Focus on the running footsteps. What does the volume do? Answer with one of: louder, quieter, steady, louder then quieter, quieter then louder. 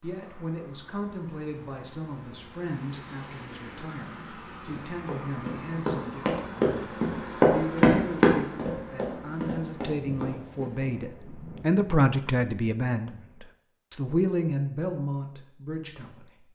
louder then quieter.